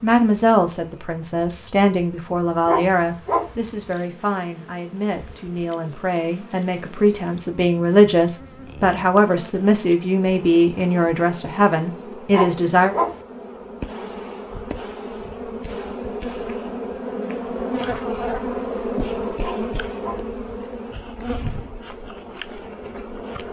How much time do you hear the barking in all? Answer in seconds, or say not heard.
3 s.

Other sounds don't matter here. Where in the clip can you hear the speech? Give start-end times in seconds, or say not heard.
0.0-12.9.